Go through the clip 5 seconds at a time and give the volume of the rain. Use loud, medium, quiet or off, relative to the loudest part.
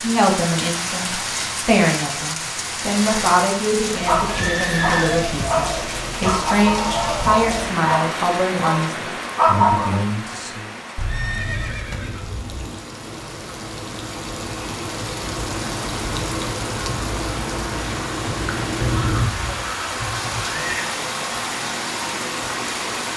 loud, loud, medium, loud, loud.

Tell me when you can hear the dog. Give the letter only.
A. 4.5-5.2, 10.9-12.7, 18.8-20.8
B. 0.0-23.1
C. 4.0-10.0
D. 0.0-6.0
C.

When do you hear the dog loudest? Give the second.
10 s.